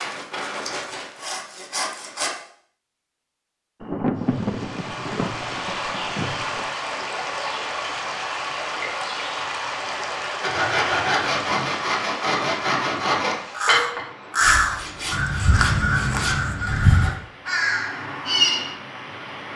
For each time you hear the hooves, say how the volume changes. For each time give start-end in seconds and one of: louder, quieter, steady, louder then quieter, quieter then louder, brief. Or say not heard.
not heard.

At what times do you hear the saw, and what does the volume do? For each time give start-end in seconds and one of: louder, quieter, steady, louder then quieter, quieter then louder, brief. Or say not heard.
0.0-2.3 brief
10.4-17.1 quieter.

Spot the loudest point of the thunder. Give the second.
4 s.